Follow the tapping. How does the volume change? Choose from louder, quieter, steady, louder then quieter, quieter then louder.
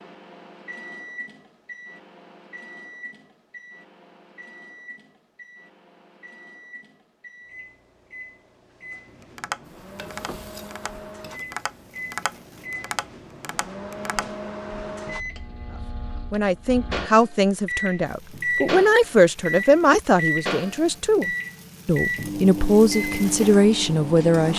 louder then quieter.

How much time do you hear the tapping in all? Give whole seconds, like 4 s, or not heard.
5 s.